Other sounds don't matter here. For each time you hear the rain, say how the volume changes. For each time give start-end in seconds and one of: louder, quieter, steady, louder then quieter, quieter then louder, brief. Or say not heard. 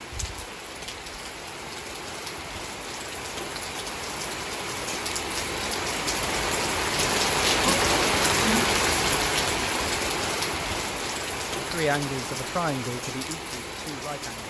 0.0-14.4 louder then quieter.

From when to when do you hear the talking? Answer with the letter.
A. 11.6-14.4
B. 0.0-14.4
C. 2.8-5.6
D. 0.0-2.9
A.